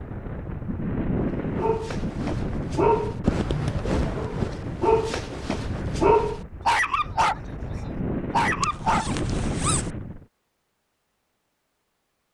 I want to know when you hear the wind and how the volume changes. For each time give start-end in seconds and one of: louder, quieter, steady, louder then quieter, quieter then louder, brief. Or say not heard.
0.0-10.2 quieter then louder.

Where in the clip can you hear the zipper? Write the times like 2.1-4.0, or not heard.
8.6-9.9.